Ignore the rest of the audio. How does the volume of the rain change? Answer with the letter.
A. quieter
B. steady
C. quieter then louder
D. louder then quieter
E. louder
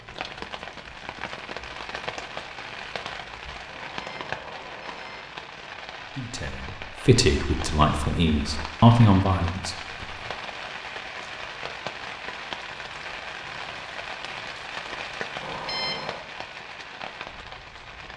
B.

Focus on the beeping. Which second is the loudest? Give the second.
16 s.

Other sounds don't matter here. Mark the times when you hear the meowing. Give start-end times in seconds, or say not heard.
not heard.